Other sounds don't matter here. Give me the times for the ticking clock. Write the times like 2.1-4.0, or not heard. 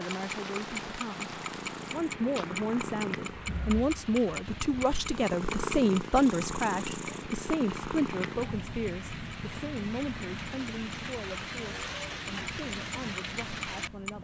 0.1-14.2.